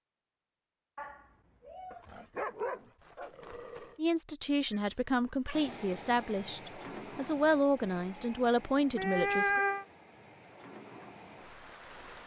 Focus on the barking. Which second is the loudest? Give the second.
3 s.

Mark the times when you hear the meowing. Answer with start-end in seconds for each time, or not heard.
0.9-2.0, 4.7-5.6, 8.9-9.8.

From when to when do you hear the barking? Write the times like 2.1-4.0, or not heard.
1.9-4.0.